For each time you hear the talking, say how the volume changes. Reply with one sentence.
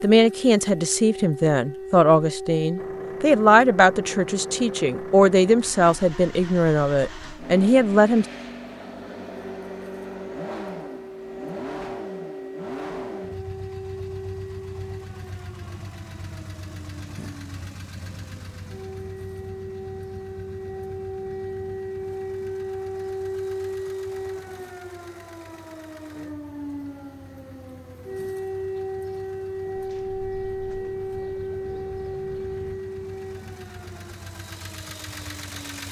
You can hear the talking from 0.0 to 8.2 s, at a steady volume.